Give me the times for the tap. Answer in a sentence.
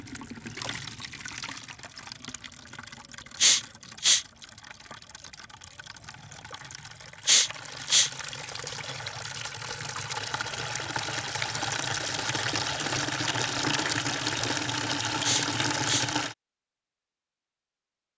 You can hear the tap from 0.0 to 16.4 s.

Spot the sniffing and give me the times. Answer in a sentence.
You can hear the sniffing from 3.4 to 4.2 s, from 7.2 to 8.1 s and from 15.2 to 16.1 s.